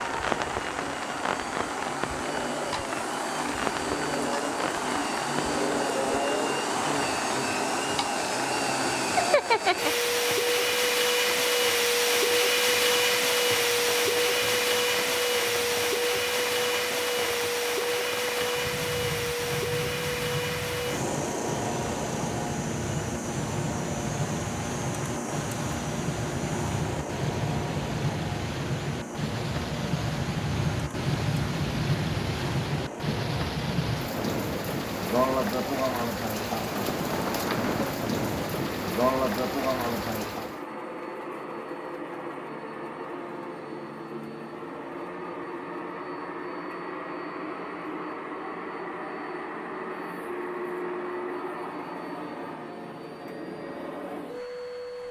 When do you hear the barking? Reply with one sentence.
You can't hear the barking here.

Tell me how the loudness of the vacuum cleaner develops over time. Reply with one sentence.
The loudness of the vacuum cleaner goes down.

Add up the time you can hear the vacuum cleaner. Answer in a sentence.
You can hear the vacuum cleaner for 55 seconds altogether.